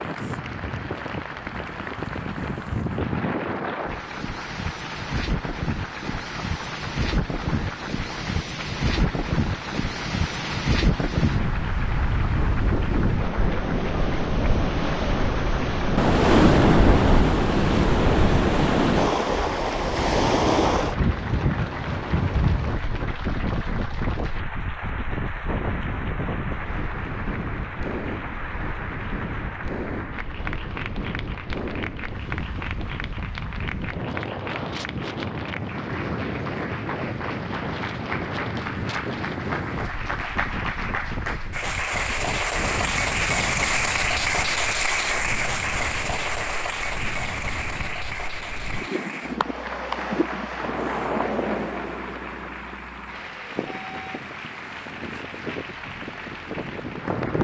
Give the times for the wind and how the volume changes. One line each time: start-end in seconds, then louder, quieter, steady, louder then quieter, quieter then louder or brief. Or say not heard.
0.0-57.4 louder then quieter.